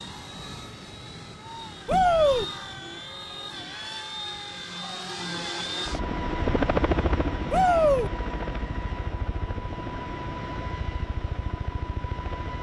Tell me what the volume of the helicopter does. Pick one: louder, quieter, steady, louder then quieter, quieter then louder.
louder then quieter.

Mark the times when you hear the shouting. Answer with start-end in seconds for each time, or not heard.
1.9-2.5, 7.5-8.1.